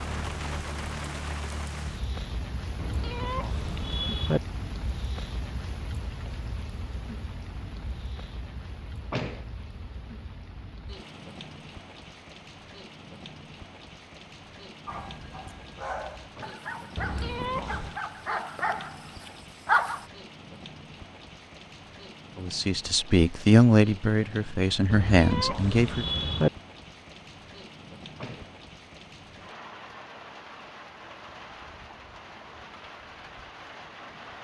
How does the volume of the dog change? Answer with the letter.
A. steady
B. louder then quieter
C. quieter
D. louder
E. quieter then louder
B.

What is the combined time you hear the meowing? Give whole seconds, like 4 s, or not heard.
4 s.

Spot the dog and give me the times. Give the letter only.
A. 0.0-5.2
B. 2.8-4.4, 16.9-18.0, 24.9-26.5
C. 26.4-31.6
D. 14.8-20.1
D.